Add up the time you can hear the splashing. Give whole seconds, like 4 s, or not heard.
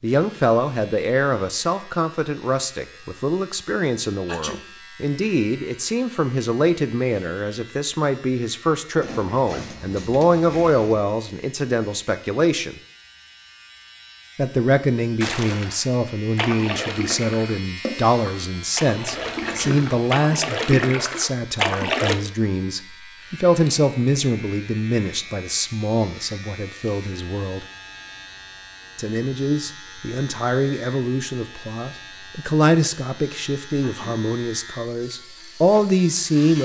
7 s.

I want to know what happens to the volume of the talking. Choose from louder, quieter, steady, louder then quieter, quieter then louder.
steady.